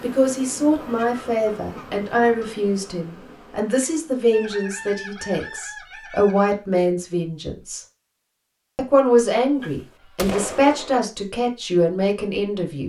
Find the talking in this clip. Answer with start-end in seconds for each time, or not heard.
0.0-7.8, 8.8-12.8.